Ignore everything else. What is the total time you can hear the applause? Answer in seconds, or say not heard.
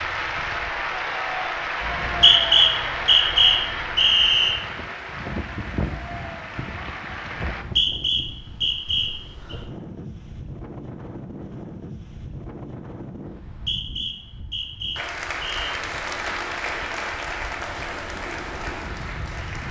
12 s.